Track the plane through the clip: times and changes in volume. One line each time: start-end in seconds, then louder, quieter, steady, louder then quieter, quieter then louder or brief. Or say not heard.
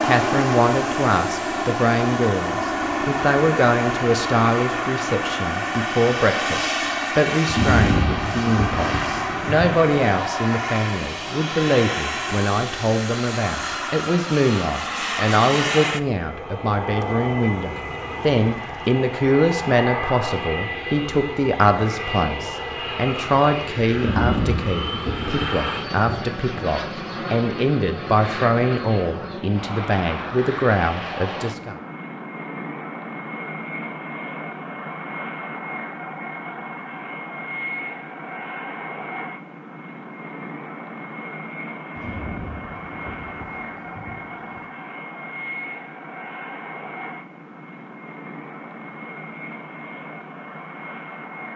0.0-51.5 quieter.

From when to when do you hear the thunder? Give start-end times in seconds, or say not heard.
7.5-9.9, 23.9-26.4, 42.0-44.6.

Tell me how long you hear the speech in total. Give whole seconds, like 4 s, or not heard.
32 s.